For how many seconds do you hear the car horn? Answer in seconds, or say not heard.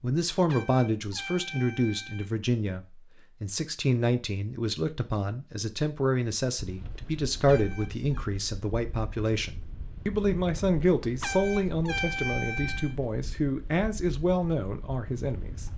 4 s.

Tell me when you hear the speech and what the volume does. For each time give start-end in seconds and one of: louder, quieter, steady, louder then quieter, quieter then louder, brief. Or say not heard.
0.0-15.7 steady.